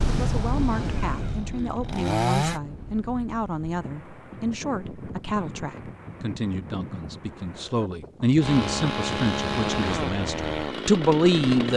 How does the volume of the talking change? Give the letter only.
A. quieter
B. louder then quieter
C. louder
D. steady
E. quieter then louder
C.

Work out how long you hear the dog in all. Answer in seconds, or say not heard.
not heard.